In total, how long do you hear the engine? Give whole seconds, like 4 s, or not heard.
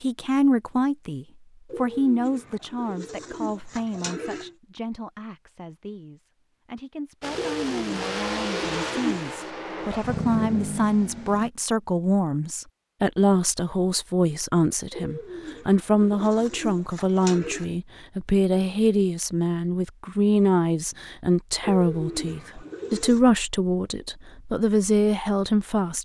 4 s.